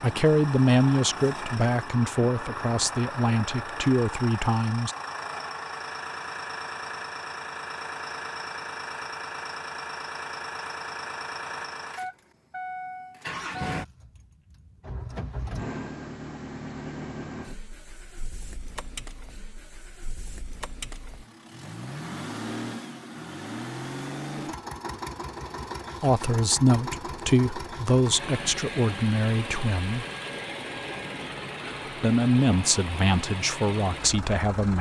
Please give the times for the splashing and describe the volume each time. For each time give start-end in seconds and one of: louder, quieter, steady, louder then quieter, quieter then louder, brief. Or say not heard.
not heard.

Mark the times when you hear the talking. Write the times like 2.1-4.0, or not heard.
0.0-5.0, 26.0-30.1, 32.0-34.7.